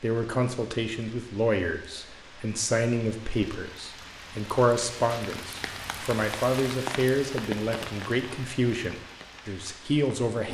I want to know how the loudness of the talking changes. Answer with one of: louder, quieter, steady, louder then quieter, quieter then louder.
steady.